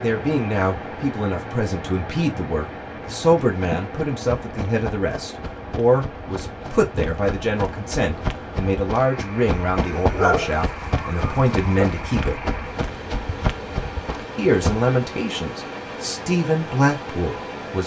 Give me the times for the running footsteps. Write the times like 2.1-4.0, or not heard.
3.4-14.9.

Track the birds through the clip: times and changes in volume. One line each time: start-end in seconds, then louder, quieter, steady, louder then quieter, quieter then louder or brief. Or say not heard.
not heard.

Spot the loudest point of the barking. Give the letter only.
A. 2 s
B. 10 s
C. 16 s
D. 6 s
B.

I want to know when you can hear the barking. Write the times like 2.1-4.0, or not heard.
9.8-11.9.